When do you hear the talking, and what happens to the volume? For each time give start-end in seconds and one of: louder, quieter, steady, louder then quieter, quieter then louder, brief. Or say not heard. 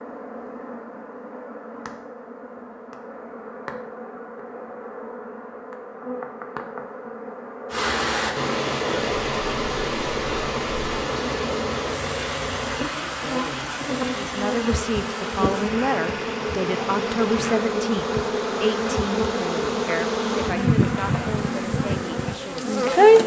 14.2-23.2 quieter.